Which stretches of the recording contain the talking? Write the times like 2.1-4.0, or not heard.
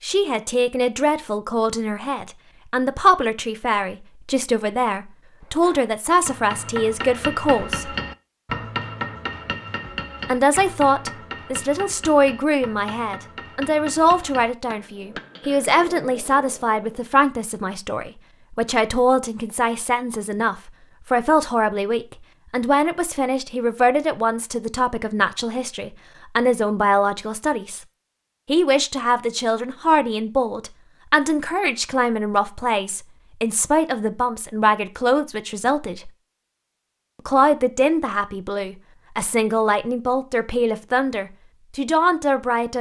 0.0-7.9, 10.2-27.8, 28.4-36.1, 37.2-42.7.